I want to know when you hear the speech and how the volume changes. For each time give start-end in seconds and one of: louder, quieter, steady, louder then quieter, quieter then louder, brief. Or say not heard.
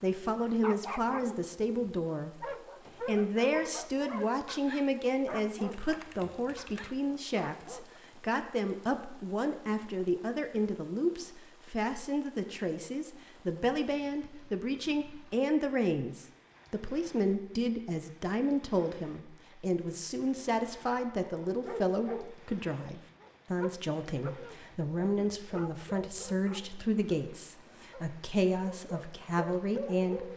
0.0-30.3 steady.